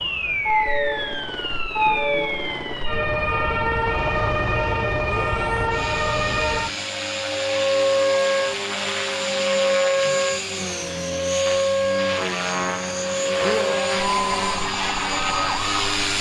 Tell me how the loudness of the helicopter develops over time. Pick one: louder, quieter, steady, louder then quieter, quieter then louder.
louder.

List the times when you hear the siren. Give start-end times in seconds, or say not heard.
0.0-16.1.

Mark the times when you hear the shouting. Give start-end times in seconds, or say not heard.
5.0-5.5, 13.4-14.7.